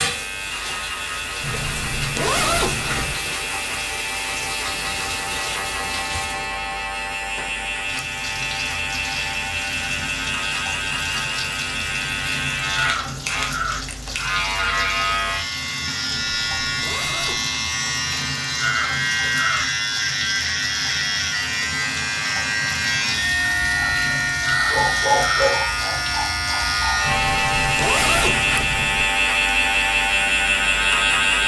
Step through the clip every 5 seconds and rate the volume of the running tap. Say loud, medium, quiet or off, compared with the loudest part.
loud, loud, loud, loud, loud, loud, off.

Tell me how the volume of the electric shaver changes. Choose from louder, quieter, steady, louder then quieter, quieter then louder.
louder.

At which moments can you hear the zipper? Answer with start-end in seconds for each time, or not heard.
1.4-3.2, 16.3-17.5, 27.1-29.1.